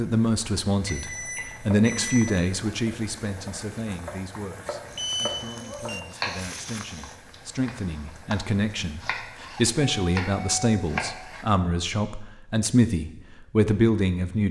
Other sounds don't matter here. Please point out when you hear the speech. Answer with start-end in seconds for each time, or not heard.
0.0-14.4.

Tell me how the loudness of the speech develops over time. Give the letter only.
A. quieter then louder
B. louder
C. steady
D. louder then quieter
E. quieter
A.